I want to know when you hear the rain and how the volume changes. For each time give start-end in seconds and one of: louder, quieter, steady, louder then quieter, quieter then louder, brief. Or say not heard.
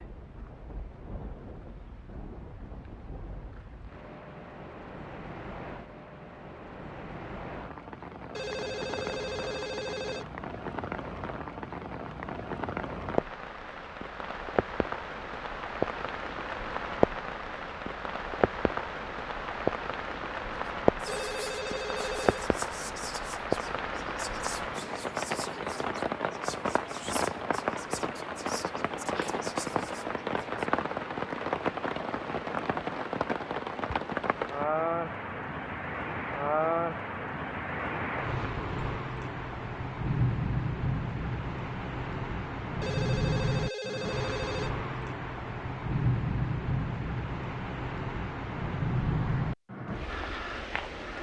0.0-51.1 louder.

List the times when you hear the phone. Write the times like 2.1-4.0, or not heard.
8.3-10.3, 21.1-22.5, 42.8-44.8.